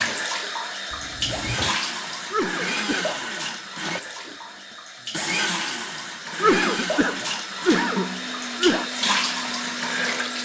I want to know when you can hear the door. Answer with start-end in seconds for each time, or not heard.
0.9-1.8.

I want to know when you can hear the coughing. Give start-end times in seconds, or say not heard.
2.3-3.1, 6.4-8.9.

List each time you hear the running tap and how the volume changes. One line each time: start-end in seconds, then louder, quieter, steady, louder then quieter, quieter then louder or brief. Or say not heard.
0.0-10.4 quieter then louder.